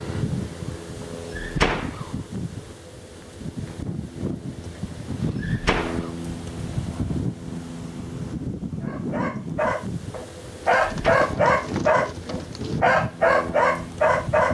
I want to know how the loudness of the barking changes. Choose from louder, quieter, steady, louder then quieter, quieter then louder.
louder.